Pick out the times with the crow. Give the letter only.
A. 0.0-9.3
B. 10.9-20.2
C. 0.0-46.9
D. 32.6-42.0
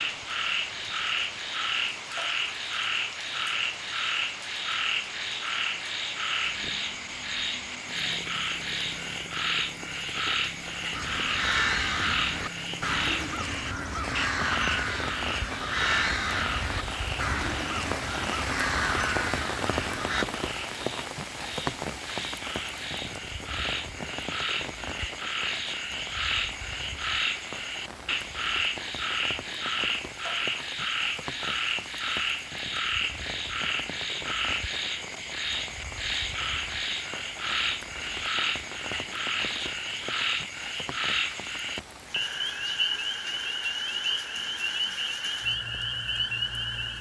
B.